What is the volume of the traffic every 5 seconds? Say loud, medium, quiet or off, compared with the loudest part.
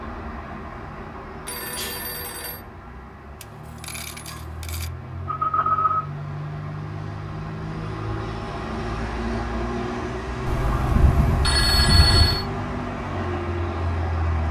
medium, loud, loud.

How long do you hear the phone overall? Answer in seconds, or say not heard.
4 s.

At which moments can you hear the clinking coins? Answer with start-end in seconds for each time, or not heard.
3.4-4.9.